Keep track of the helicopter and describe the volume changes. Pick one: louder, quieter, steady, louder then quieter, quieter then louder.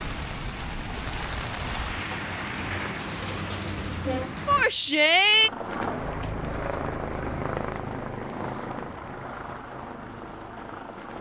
quieter.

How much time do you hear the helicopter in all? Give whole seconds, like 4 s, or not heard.
6 s.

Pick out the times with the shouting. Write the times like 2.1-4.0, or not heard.
4.5-5.5.